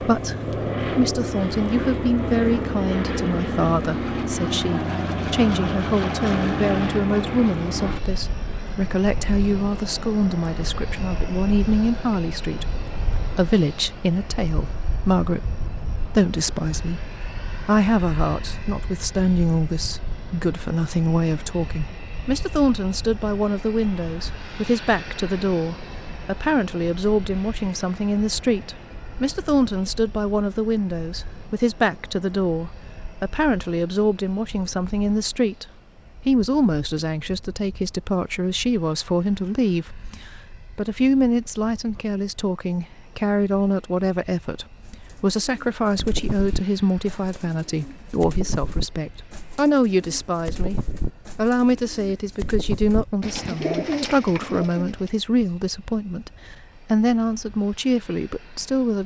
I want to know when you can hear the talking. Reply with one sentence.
The talking can be heard from 0.0 to 17.0 s, from 17.6 to 35.6 s, from 36.2 to 50.8 s, from 51.4 to 56.3 s and from 56.9 to 59.0 s.